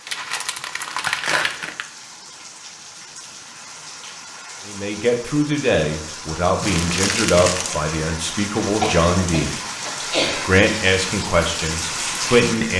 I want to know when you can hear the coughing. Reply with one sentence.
You can hear the coughing from 8.8 to 10.5 s.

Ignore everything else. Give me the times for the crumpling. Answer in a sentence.
You can hear the crumpling from 0.1 to 1.9 s and from 6.6 to 7.8 s.